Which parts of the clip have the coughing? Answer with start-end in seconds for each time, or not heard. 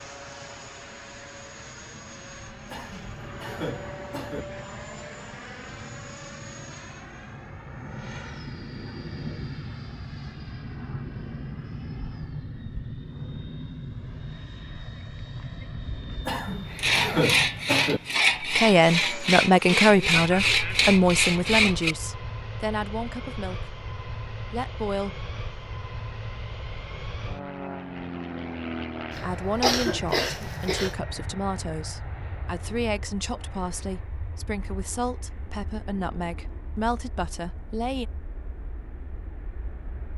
2.7-4.5, 16.2-18.0, 29.1-30.9.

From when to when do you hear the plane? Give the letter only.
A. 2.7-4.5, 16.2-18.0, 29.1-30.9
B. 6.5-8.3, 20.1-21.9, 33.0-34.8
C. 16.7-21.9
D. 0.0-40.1
D.